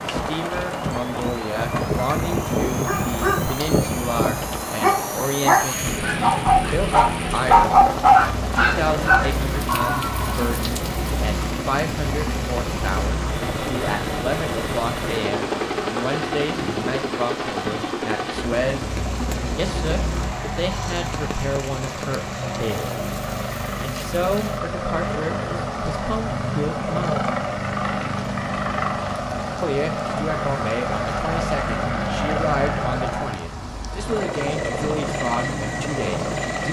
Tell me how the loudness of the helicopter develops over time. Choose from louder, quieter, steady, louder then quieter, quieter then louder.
steady.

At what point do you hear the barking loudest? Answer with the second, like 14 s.
8 s.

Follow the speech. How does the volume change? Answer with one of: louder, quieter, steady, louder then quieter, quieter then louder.
steady.